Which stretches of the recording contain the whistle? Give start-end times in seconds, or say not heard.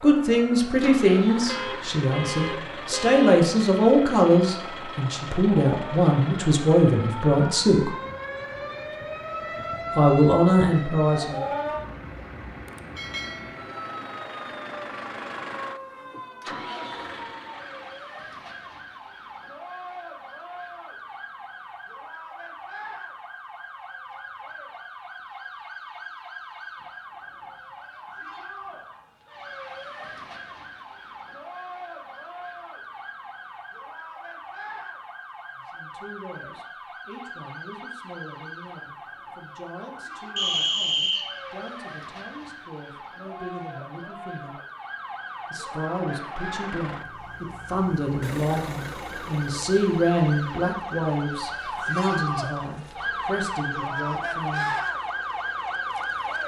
40.4-41.4.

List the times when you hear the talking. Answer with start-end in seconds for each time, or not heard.
0.0-7.9, 9.9-11.4, 35.5-44.5, 45.5-54.8.